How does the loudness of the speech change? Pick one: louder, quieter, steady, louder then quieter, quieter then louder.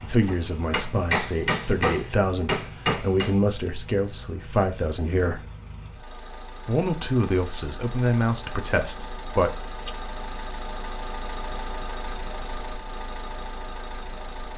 steady.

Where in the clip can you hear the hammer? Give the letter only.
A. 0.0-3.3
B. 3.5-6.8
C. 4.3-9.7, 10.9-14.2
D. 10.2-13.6
A.